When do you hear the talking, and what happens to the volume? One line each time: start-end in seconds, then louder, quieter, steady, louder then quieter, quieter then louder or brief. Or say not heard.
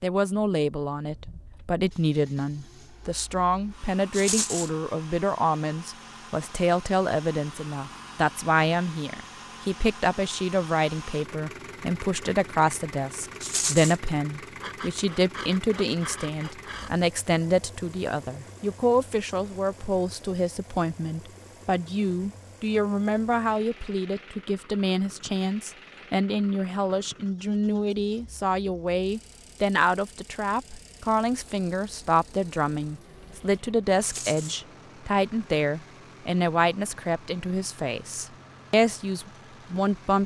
0.0-40.2 steady.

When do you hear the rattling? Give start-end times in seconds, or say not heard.
4.1-4.7, 13.4-13.9, 34.0-34.6.